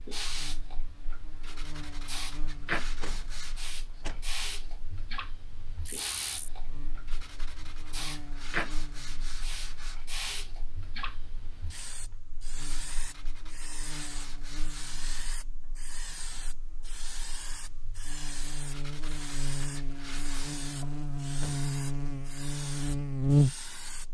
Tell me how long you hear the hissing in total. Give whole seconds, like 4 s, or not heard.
24 s.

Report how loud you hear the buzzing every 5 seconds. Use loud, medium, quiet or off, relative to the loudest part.
quiet, quiet, quiet, quiet, loud.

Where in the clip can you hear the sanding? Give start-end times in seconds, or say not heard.
1.4-3.8, 7.0-10.1, 12.6-15.4, 18.7-20.6.